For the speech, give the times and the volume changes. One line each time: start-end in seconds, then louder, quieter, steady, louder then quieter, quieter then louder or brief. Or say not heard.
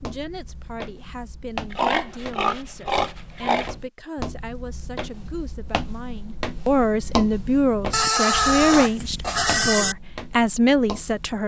0.0-11.4 louder.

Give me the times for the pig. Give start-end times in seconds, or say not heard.
1.7-3.7, 7.9-9.9.